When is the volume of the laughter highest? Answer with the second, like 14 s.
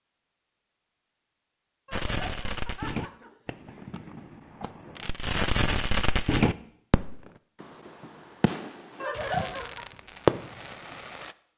9 s.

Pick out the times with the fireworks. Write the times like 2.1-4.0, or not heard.
1.9-11.3.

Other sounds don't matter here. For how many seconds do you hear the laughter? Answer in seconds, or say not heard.
3 s.